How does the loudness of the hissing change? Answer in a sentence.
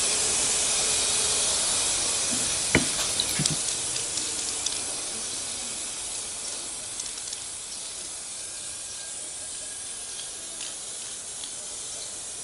The volume of the hissing goes down.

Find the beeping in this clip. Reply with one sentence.
The beeping can be heard from 2.3 to 3.6 s.